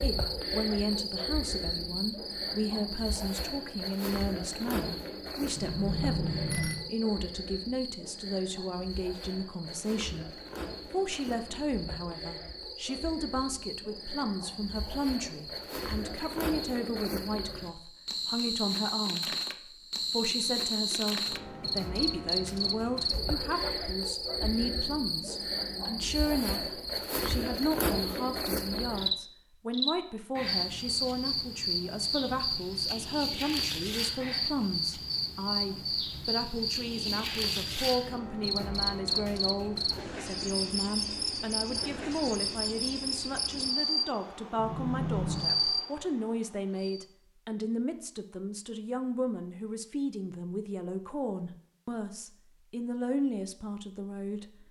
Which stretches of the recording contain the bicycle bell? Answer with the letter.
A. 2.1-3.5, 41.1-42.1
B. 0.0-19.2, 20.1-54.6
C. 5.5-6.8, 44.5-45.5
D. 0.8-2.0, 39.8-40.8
C.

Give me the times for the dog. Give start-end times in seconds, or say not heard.
not heard.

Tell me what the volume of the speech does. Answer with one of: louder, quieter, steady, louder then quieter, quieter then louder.
steady.